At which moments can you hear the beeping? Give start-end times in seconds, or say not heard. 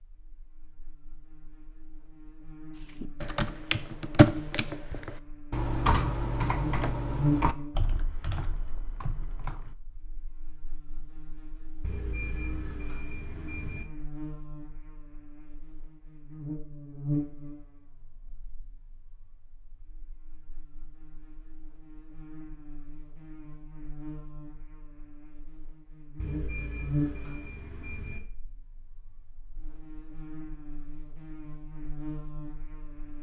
11.8-13.8, 26.1-28.2.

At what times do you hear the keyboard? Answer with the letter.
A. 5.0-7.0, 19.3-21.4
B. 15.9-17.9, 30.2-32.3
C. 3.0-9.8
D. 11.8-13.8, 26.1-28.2
C.